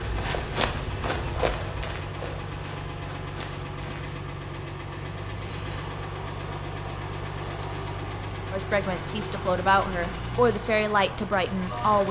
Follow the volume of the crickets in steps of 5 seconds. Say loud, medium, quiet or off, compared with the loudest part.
off, loud, loud.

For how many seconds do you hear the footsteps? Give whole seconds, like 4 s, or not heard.
4 s.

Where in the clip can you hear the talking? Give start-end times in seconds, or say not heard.
8.5-12.0.